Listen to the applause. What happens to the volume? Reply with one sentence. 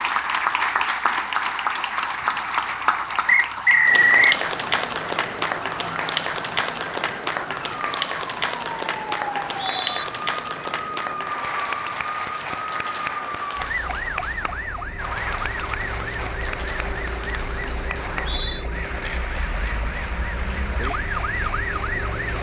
The loudness of the applause goes down.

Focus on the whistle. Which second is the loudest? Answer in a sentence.
The volume of the whistle peaks at 4 seconds.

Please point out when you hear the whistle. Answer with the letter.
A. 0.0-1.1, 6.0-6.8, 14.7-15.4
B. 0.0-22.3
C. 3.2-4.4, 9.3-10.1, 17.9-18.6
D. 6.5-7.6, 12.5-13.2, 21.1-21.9
C.